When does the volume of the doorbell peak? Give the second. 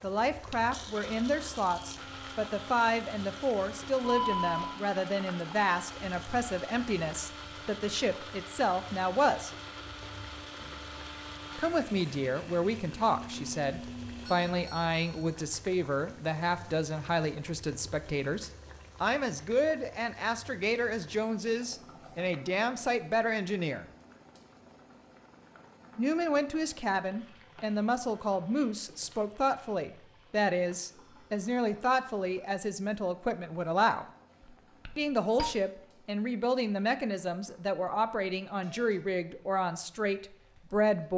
4 s.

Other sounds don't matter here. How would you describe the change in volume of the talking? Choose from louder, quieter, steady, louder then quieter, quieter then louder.
steady.